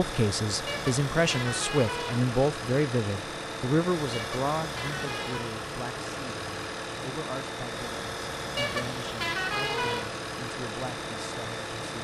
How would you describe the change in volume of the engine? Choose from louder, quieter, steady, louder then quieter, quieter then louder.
steady.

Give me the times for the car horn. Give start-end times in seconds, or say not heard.
0.7-2.2, 4.1-5.6, 8.6-10.1.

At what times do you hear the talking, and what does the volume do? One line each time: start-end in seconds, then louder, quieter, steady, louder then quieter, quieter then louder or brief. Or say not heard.
0.0-11.9 quieter.